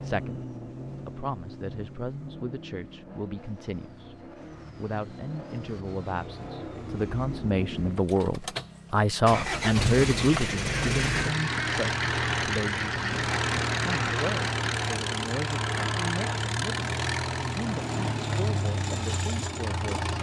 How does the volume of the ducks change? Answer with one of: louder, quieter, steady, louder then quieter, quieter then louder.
steady.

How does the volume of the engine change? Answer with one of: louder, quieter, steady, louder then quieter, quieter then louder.
louder.